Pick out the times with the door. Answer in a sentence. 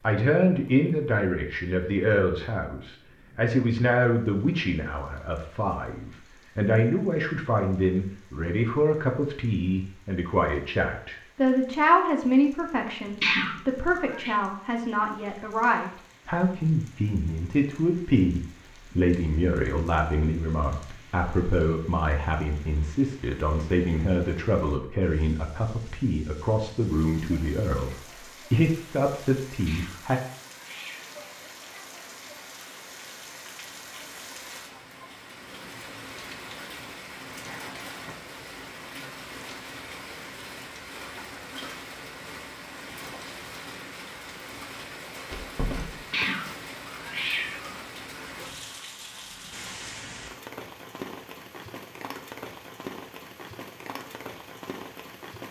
You can hear the door from 45.3 to 46.1 s.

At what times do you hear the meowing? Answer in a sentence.
The meowing can be heard from 13.2 to 14.3 s, from 29.6 to 31.2 s and from 46.1 to 47.8 s.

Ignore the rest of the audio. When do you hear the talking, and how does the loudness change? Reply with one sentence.
The talking can be heard from 0.0 to 30.2 s, at a steady volume.